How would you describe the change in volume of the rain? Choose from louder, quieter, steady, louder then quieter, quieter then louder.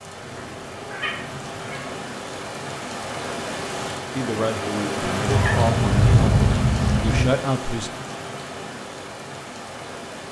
louder then quieter.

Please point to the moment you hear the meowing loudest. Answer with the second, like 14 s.
6 s.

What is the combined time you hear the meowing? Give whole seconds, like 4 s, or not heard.
4 s.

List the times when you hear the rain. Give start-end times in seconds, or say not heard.
0.0-10.2.